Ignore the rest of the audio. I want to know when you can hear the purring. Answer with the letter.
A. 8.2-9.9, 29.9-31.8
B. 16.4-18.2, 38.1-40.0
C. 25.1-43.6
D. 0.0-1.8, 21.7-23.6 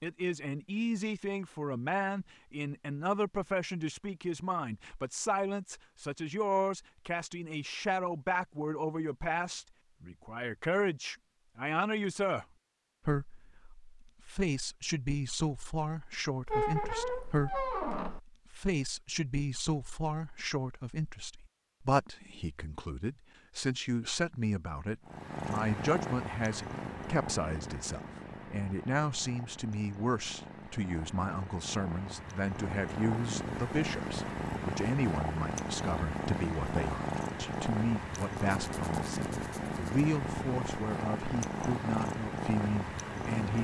C.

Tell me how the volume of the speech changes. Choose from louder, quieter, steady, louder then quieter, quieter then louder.
steady.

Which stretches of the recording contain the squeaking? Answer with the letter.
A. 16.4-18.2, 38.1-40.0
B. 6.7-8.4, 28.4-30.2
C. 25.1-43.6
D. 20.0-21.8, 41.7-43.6
A.